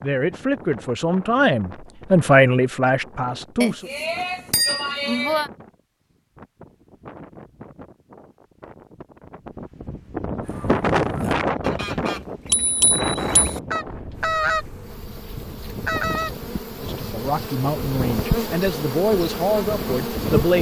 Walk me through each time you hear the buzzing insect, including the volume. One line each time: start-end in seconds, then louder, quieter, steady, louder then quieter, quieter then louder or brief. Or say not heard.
14.1-20.5 louder.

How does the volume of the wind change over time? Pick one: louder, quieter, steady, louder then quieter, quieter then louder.
louder then quieter.